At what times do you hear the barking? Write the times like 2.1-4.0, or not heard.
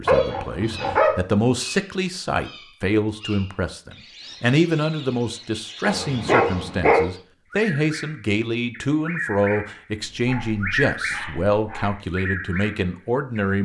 0.1-1.2, 5.8-7.0, 10.0-11.9.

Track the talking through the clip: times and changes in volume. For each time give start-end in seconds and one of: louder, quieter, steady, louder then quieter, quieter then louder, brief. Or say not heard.
0.0-13.6 steady.